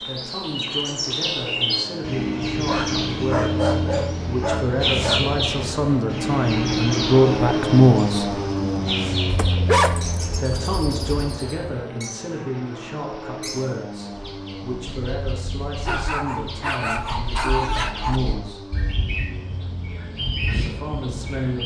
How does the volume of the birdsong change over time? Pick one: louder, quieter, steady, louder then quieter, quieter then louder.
quieter then louder.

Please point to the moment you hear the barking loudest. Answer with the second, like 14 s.
10 s.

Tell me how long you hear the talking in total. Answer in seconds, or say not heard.
18 s.